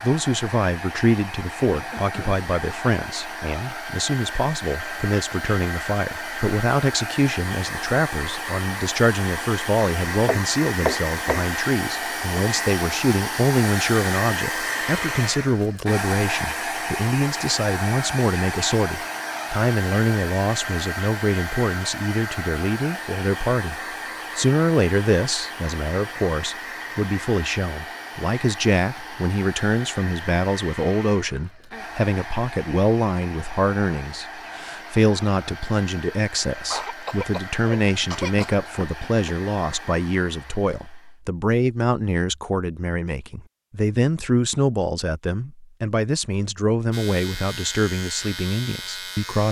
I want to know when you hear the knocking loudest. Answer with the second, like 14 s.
11 s.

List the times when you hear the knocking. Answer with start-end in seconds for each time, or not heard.
10.2-11.5, 38.5-39.3.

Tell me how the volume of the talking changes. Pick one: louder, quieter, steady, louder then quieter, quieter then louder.
steady.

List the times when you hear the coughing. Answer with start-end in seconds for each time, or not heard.
1.6-2.5, 36.7-38.5.